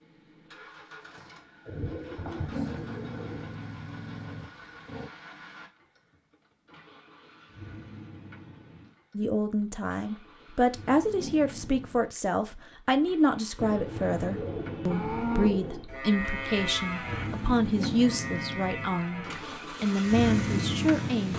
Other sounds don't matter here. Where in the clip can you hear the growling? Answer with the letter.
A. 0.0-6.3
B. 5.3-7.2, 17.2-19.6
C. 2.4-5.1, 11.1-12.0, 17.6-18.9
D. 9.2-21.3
C.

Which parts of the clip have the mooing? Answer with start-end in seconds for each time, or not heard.
14.8-21.2.